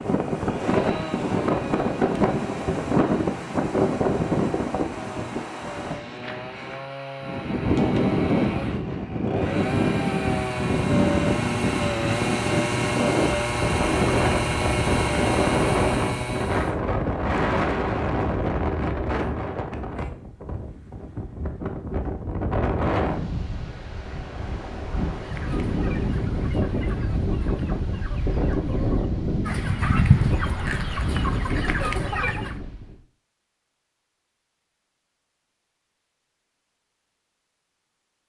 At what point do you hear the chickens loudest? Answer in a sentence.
The volume of the chickens peaks at 30 seconds.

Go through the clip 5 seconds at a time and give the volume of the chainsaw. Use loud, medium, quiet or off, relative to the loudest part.
medium, medium, loud, loud, off, off, off, off.